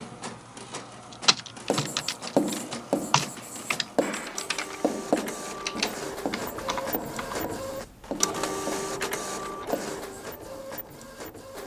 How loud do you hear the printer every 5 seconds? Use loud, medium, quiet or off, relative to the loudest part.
medium, loud, medium.